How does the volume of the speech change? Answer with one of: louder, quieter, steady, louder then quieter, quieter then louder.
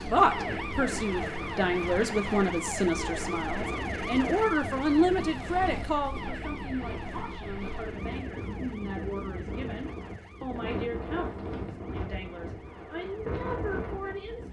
quieter.